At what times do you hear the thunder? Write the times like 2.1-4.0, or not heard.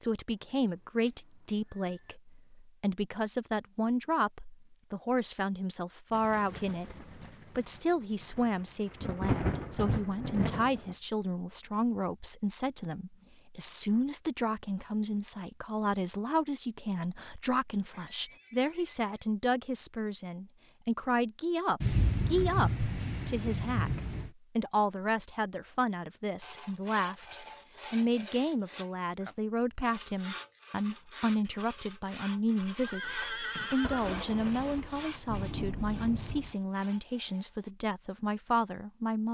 6.1-10.9, 21.8-24.3, 33.8-36.5.